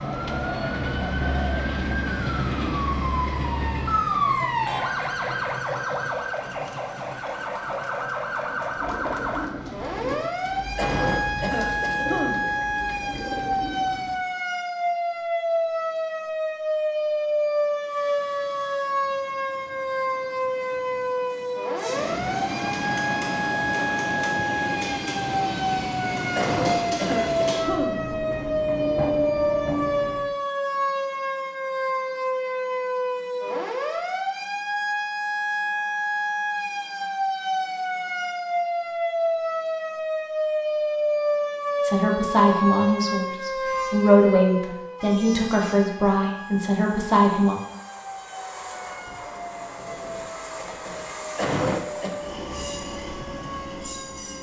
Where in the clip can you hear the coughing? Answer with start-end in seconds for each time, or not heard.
10.8-12.6, 26.4-28.1, 51.4-52.1.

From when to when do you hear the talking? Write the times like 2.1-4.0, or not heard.
41.8-47.5.